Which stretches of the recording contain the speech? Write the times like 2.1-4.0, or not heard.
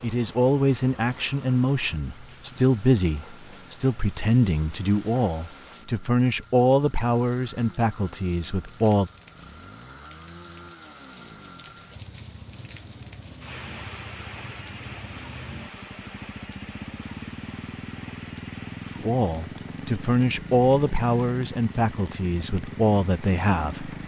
0.0-9.1, 18.9-23.9.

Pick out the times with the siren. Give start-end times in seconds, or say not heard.
not heard.